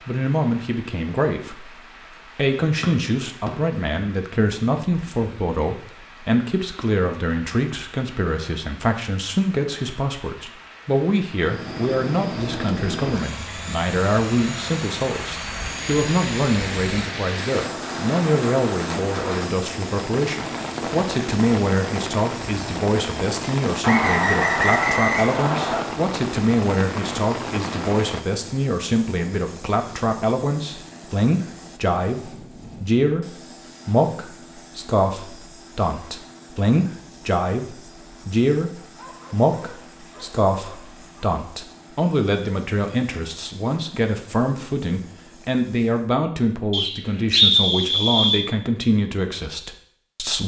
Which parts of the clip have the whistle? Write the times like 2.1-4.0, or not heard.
2.8-3.5, 23.8-25.9, 46.7-48.5.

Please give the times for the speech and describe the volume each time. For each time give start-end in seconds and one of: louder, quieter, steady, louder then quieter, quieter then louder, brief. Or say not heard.
0.1-50.4 steady.